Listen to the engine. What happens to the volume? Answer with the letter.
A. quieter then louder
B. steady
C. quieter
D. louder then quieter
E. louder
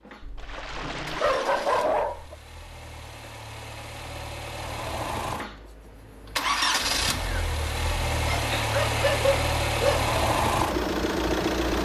E.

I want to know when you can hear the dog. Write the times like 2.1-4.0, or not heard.
0.2-2.4, 8.3-10.1.